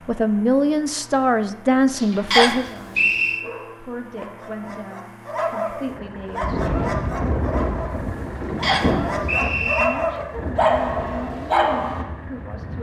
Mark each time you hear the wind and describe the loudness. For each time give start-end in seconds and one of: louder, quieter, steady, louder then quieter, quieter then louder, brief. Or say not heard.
6.3-12.7 quieter.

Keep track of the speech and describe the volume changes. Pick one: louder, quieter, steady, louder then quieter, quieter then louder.
quieter.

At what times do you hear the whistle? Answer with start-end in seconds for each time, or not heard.
2.3-3.5, 8.6-9.8.